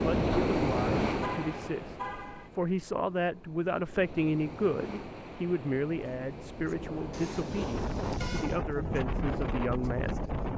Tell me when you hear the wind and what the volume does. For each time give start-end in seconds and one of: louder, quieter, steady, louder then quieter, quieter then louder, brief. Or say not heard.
0.0-10.5 quieter then louder.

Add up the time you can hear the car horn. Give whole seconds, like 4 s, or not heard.
3 s.